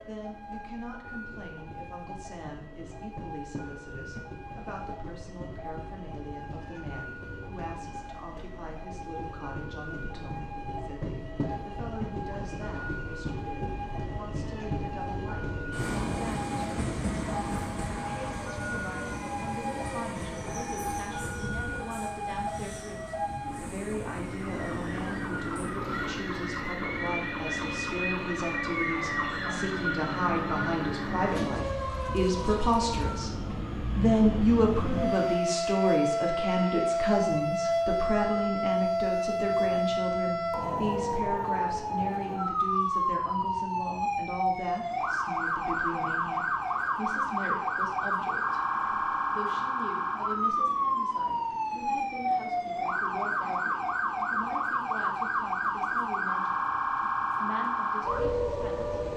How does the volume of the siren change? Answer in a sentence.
The loudness of the siren goes up.